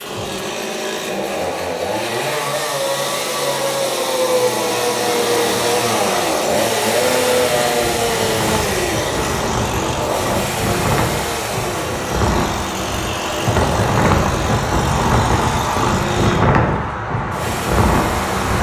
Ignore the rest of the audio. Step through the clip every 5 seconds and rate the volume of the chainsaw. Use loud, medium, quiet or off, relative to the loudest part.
loud, loud, medium, medium.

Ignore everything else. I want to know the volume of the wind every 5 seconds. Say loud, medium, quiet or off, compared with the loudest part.
off, medium, loud, loud.